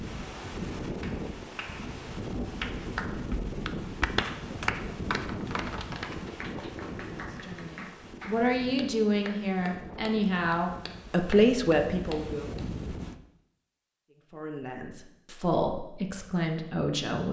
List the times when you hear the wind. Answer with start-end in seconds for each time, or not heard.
0.0-13.2.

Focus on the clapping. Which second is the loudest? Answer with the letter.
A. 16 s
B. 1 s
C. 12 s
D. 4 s
D.